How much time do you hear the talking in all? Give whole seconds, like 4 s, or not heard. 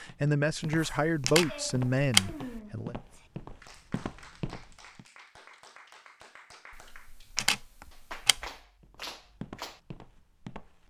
3 s.